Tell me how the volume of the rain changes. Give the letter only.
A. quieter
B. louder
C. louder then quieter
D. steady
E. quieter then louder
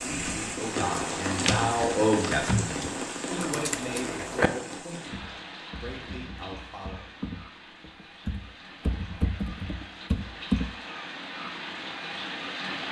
E.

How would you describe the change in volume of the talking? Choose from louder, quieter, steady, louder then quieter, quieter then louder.
louder then quieter.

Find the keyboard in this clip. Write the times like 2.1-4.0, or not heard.
0.8-4.5, 5.1-10.7.